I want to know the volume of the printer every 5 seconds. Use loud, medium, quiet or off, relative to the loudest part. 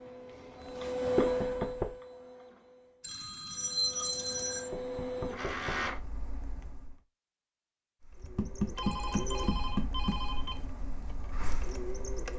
loud, loud, medium.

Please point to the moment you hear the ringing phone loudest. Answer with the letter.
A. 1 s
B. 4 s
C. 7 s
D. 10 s
B.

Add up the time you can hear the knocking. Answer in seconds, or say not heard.
4 s.